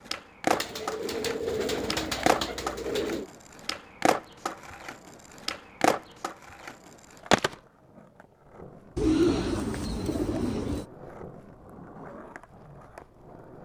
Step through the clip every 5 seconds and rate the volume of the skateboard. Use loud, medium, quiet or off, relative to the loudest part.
loud, loud, quiet.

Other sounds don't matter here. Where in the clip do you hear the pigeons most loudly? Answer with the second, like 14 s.
9 s.